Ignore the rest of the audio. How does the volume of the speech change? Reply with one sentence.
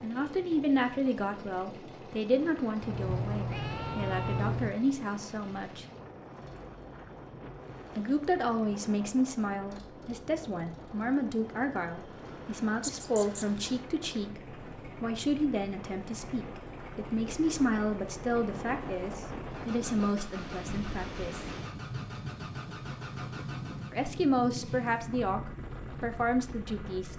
The loudness of the speech stays about the same.